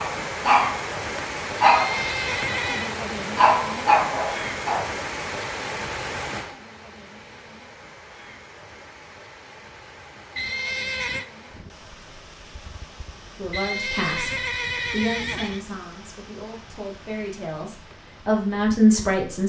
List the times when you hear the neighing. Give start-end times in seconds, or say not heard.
1.6-3.0, 10.3-11.2, 13.5-15.7.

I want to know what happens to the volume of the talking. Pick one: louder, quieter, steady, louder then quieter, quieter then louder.
quieter then louder.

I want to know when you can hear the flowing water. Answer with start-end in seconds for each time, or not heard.
0.0-19.4.